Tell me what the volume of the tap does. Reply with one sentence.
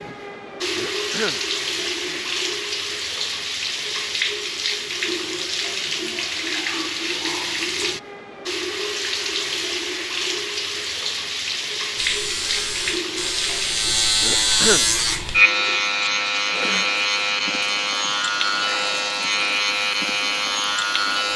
The loudness of the tap goes down.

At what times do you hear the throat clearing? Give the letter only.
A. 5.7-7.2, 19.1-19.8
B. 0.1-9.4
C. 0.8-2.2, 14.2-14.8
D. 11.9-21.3
C.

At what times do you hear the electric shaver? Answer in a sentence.
The electric shaver can be heard from 11.9 to 21.3 s.